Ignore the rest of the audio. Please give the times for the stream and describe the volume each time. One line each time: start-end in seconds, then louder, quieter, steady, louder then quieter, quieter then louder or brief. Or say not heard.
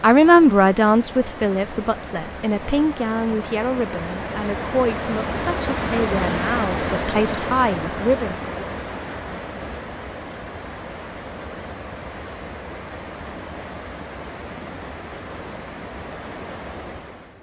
0.0-17.3 louder then quieter.